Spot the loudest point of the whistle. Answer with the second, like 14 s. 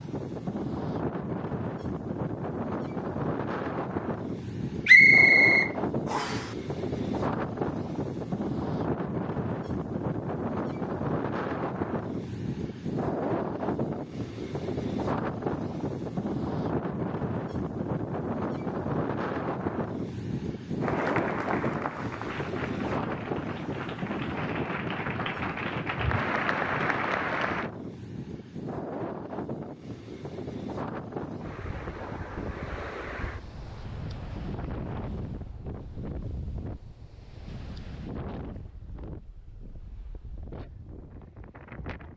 5 s.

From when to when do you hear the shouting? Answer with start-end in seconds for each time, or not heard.
not heard.